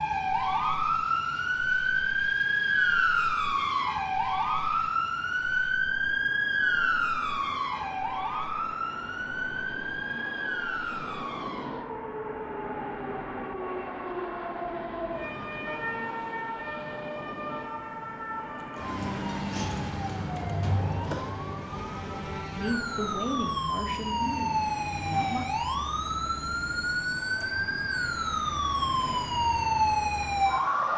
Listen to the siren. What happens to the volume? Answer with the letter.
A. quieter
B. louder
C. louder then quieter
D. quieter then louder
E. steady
D.